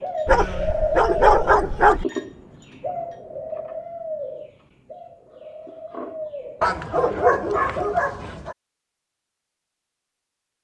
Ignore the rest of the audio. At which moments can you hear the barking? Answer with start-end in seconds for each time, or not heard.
0.2-2.0, 6.6-8.6.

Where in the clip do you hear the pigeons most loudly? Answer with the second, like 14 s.
1 s.